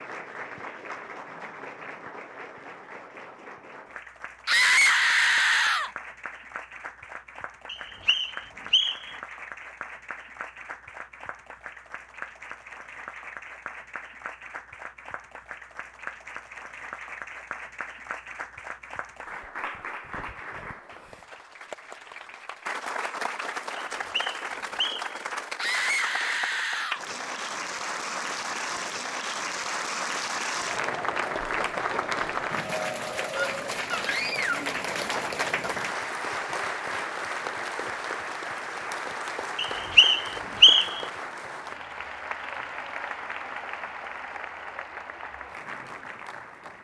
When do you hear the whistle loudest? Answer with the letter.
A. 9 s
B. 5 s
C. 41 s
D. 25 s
C.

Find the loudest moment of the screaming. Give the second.
5 s.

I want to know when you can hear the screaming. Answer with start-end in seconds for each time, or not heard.
4.5-5.9, 25.6-27.1, 33.4-34.5.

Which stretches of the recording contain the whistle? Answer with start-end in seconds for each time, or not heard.
7.7-9.2, 23.9-25.1, 39.5-41.0.